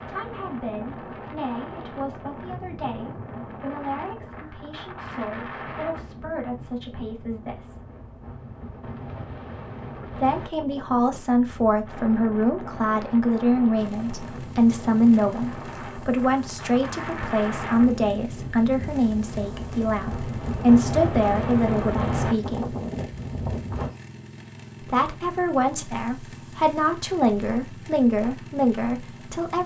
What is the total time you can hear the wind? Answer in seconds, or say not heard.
24 s.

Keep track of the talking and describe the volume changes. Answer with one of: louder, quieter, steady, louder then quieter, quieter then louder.
louder.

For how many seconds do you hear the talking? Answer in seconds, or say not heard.
25 s.